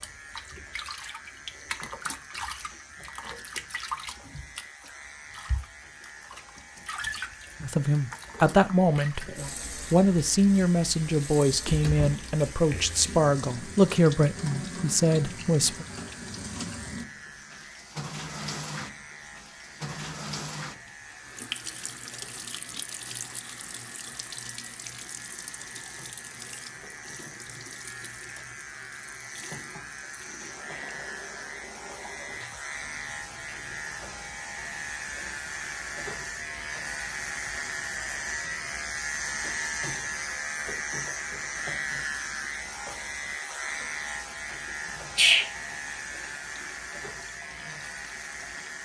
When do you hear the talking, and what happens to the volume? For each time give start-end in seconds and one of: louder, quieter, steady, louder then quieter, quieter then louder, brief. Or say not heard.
7.6-9.2 brief
9.9-15.8 steady.